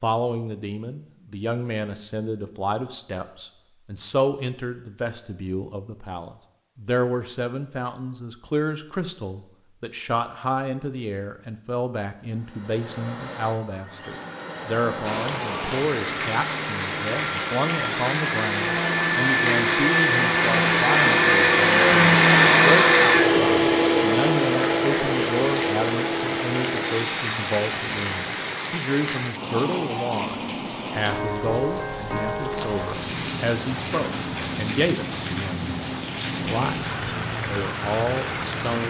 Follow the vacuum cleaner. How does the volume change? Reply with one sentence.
The loudness of the vacuum cleaner goes up, then down.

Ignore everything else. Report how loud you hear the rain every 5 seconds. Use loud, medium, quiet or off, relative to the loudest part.
off, off, off, loud, loud, loud, loud, loud.